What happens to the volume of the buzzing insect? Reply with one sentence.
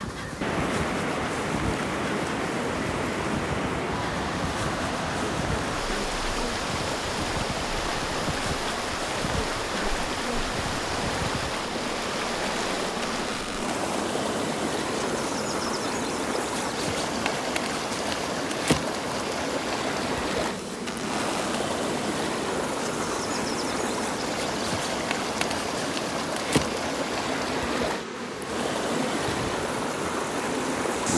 The loudness of the buzzing insect stays about the same.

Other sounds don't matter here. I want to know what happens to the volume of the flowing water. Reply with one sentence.
The loudness of the flowing water stays about the same.